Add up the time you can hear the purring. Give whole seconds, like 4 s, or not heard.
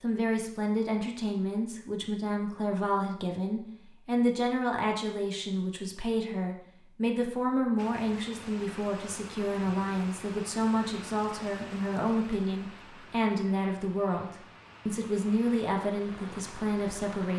not heard.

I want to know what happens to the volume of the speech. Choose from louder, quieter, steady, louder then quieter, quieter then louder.
steady.